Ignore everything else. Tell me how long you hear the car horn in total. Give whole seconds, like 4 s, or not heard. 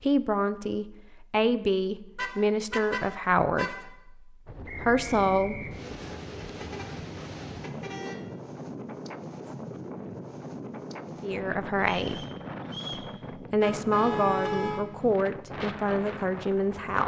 5 s.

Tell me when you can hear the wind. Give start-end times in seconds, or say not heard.
4.5-17.0.